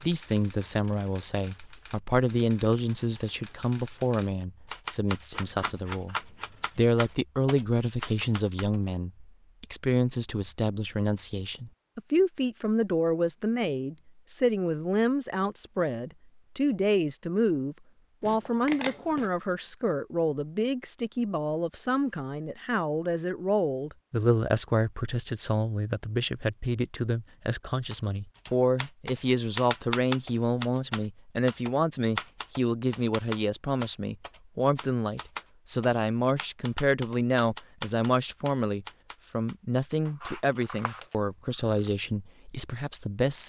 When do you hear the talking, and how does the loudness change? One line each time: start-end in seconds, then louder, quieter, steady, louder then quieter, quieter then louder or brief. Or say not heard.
0.0-43.4 steady.